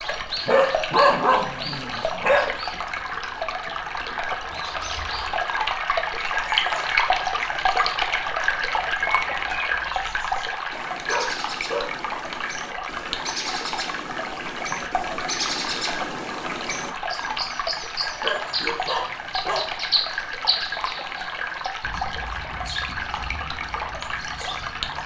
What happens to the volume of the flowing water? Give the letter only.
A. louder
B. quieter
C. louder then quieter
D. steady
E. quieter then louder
C.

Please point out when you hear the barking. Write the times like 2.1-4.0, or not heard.
0.5-2.5, 11.1-11.9, 18.1-19.7.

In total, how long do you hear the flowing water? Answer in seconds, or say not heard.
25 s.